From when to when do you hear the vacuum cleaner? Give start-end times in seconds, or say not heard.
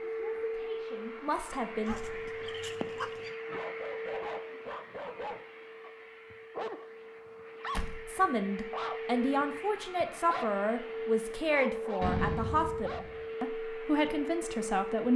0.0-15.1.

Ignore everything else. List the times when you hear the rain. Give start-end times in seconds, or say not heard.
not heard.